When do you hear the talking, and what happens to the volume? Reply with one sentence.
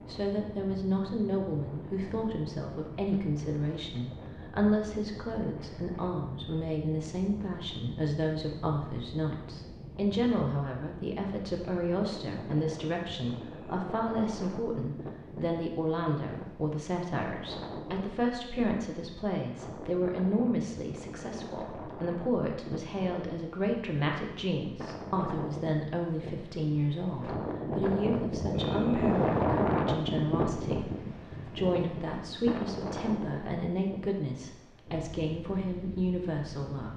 You can hear the talking from 0.1 to 36.9 s, at a steady volume.